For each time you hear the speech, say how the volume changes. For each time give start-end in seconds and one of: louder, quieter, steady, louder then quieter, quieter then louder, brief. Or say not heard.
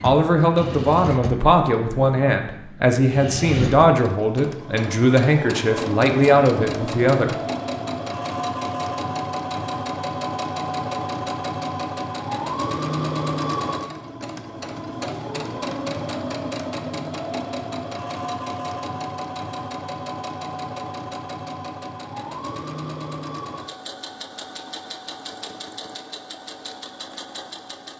0.0-7.3 steady.